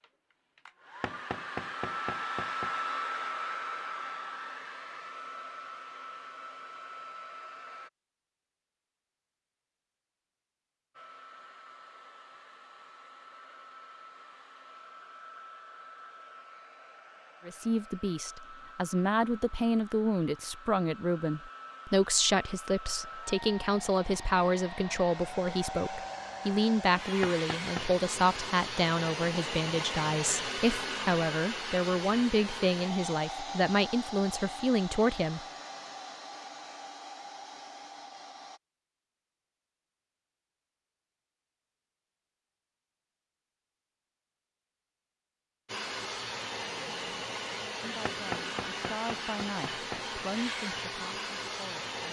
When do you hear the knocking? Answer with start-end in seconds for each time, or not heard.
1.0-2.8, 27.2-27.9, 48.0-50.0.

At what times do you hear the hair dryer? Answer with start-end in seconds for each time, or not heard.
0.0-7.9, 10.9-38.6, 45.6-52.0.